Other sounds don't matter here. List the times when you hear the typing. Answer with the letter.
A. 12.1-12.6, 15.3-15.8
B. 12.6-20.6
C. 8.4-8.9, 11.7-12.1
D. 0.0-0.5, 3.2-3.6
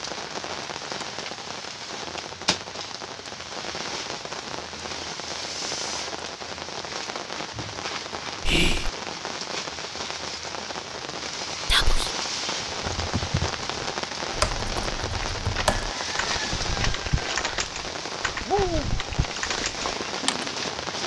B.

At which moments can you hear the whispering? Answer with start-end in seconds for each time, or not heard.
8.4-8.9, 11.7-12.1.